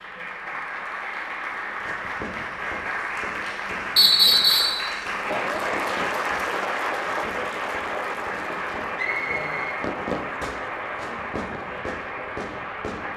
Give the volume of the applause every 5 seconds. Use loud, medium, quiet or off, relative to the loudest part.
loud, loud, medium.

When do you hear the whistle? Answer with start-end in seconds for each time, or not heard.
4.0-4.8, 8.9-9.8.